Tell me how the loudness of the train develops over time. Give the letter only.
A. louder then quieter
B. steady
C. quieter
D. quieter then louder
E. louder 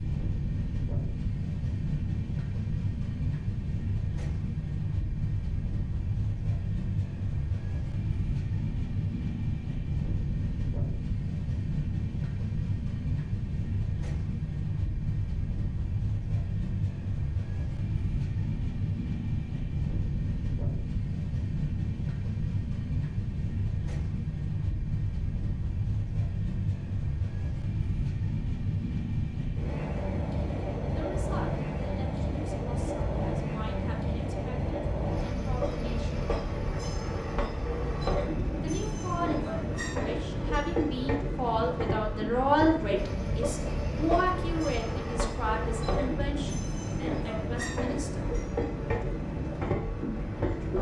B.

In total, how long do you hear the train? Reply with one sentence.
The train can be heard for 51 seconds in total.